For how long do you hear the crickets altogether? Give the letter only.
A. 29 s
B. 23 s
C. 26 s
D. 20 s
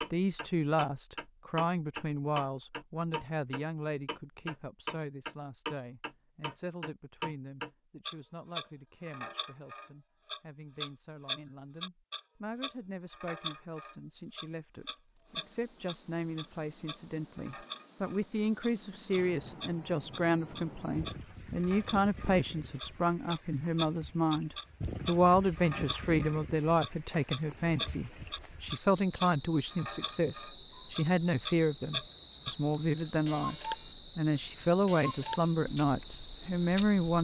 B.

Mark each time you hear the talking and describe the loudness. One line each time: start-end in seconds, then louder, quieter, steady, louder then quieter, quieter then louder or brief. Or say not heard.
0.0-37.2 quieter then louder.